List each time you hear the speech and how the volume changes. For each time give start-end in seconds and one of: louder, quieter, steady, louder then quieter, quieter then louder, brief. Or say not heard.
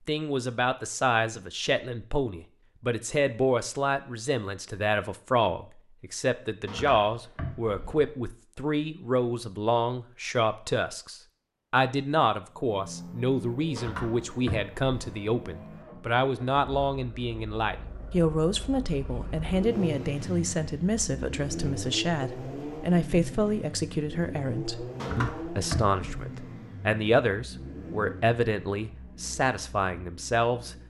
0.1-30.8 steady.